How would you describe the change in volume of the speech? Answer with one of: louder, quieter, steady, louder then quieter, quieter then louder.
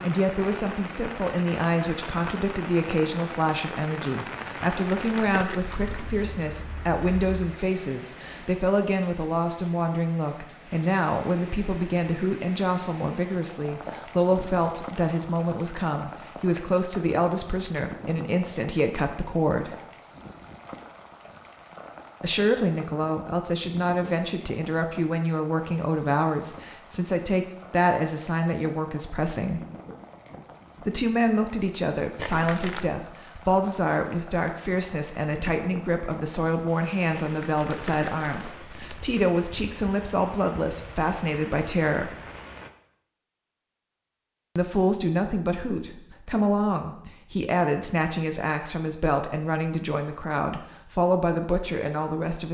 steady.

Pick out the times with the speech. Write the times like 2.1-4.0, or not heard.
0.0-19.8, 22.2-29.6, 30.8-42.1, 44.5-52.4.